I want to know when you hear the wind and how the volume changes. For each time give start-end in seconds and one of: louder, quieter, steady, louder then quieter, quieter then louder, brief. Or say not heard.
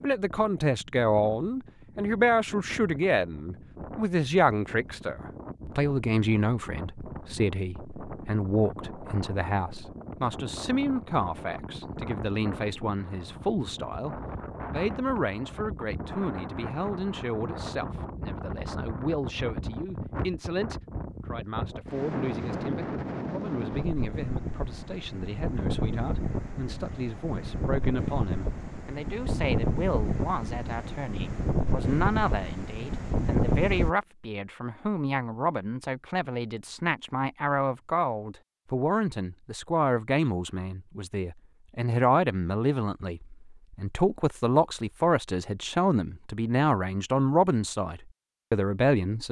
0.0-34.0 louder.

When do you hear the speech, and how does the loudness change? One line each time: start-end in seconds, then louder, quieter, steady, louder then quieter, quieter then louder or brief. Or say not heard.
0.0-49.2 quieter then louder.